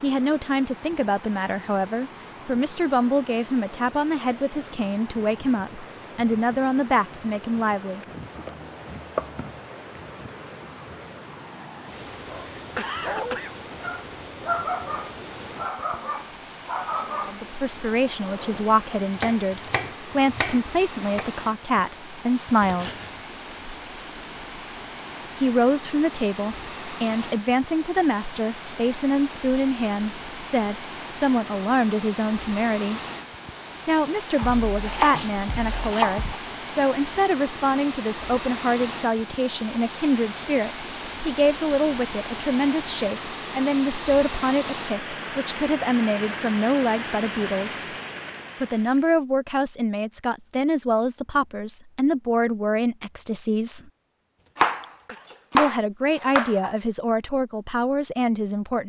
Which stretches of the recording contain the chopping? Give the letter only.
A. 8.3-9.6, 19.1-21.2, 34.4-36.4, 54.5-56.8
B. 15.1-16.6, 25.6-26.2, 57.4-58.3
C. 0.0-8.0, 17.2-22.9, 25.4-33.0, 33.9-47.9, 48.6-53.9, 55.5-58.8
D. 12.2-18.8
A.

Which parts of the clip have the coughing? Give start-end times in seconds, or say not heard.
12.1-13.6, 22.6-23.2, 54.4-55.3.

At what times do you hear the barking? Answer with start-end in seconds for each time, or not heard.
12.2-18.8.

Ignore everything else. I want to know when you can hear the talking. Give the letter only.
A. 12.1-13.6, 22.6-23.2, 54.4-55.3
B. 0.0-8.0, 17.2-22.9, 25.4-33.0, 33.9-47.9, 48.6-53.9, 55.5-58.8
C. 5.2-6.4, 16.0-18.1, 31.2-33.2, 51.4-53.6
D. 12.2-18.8
B.